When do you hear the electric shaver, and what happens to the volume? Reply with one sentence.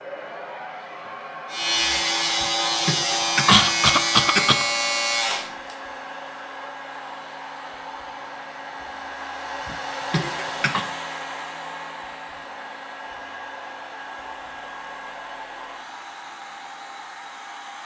You can hear the electric shaver from 1.4 to 5.8 s, at a steady volume.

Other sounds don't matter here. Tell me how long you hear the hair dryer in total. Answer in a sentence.
The hair dryer can be heard for 18 seconds in total.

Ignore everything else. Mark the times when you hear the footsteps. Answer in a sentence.
You can't hear the footsteps here.